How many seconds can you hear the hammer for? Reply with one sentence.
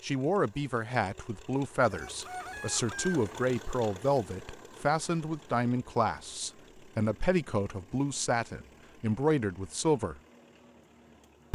You can't hear the hammer here.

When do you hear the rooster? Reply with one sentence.
You can hear the rooster from 1.9 to 3.2 s.